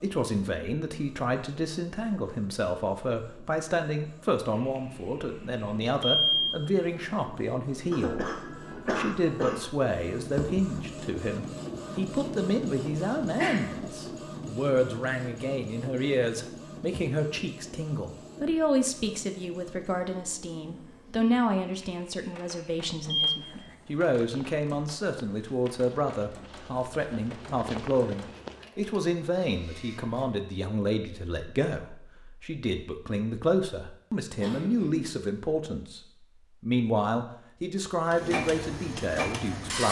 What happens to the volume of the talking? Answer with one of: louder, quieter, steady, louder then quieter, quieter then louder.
steady.